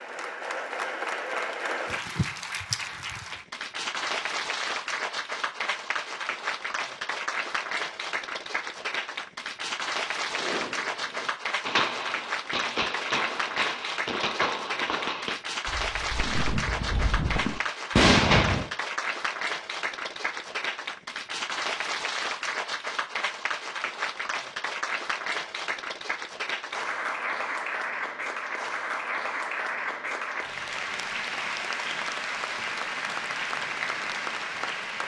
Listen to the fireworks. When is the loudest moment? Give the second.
18 s.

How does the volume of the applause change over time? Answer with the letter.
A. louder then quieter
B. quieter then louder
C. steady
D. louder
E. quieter
C.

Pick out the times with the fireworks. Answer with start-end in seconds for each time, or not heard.
10.3-18.6.